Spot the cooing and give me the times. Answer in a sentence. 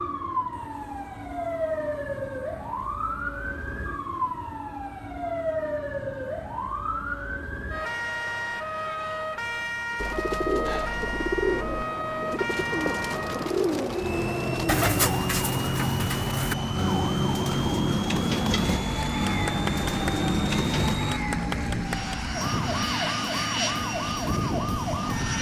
You can hear the cooing from 9.9 to 20.9 s.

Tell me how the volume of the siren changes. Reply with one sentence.
The volume of the siren stays about the same.